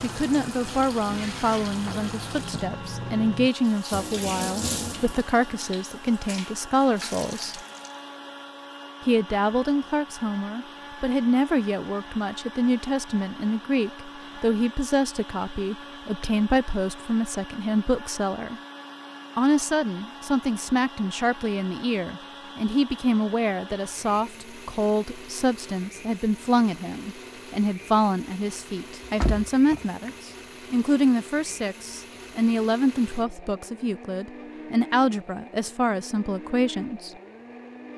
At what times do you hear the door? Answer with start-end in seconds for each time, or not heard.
29.1-30.1.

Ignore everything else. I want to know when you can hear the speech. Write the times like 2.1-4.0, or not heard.
0.0-7.6, 9.1-18.6, 19.4-37.1.